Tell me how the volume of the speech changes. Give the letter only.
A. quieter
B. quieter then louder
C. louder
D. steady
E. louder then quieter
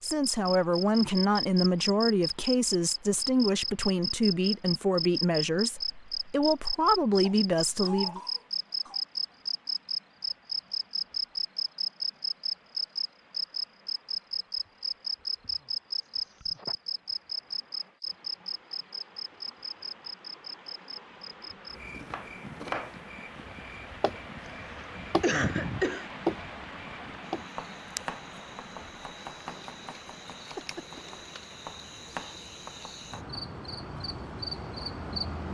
D.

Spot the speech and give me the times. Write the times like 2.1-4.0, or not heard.
0.0-8.2.